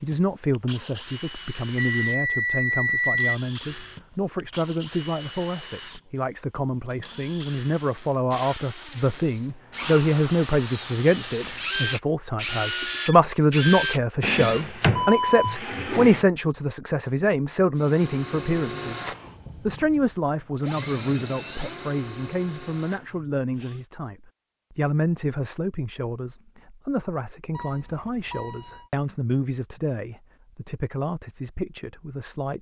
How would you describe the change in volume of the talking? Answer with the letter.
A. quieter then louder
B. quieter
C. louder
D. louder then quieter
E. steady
D.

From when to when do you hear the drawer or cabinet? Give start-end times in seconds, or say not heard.
14.2-16.2.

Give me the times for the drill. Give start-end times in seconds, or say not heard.
0.0-14.7, 17.8-23.9.